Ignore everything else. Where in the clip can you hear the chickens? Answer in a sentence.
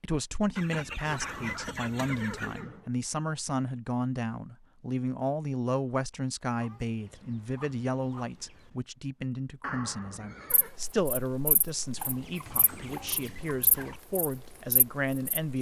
You can hear the chickens from 0.6 to 2.6 s, from 6.5 to 8.8 s and from 11.9 to 14.0 s.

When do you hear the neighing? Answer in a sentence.
You can hear the neighing from 1.2 to 2.9 s and from 9.6 to 10.8 s.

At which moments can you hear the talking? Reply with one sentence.
You can hear the talking from 0.0 to 15.5 s.